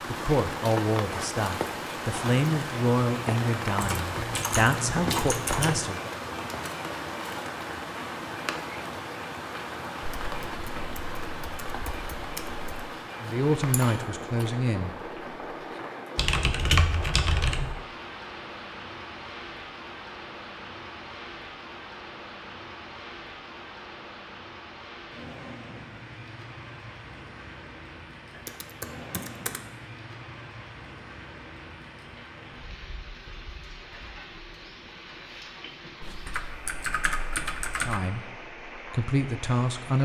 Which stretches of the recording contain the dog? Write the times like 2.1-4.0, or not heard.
not heard.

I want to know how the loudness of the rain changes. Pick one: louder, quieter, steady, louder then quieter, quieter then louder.
quieter.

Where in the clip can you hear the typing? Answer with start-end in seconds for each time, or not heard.
3.8-5.8, 10.0-12.7, 16.1-17.8, 28.4-29.6, 36.0-38.0.